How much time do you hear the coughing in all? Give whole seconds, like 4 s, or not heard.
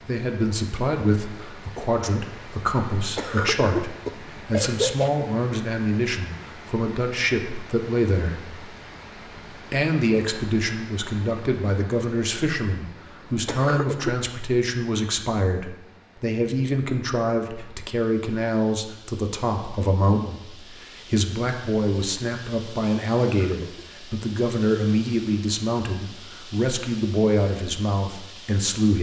3 s.